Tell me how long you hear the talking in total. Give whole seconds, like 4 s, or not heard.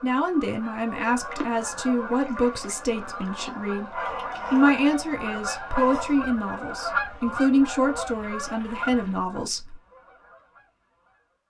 10 s.